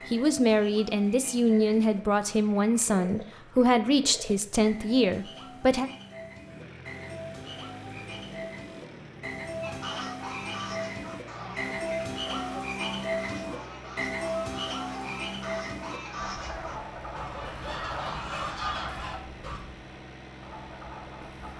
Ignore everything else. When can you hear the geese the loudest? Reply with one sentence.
The loudest moment of the geese is at 19 seconds.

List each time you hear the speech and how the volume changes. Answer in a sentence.
The speech can be heard from 0.1 to 5.9 s, at a steady volume.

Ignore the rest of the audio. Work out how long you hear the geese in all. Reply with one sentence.
The geese can be heard for 10 seconds in total.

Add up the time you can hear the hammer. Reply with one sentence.
You can't hear the hammer here.